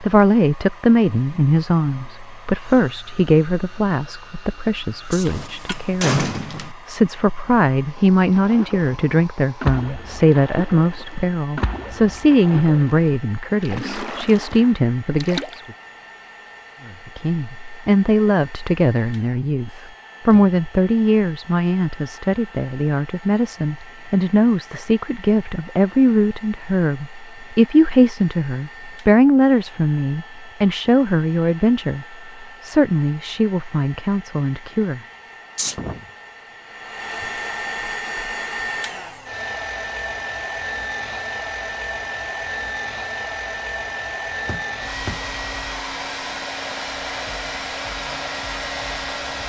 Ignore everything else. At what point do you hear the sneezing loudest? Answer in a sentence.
The volume of the sneezing peaks at 36 seconds.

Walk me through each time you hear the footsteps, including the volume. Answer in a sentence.
You can't hear the footsteps here.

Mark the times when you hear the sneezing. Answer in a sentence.
The sneezing can be heard from 5.1 to 5.6 s and from 35.5 to 36.1 s.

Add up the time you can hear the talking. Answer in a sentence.
The talking can be heard for 34 seconds in total.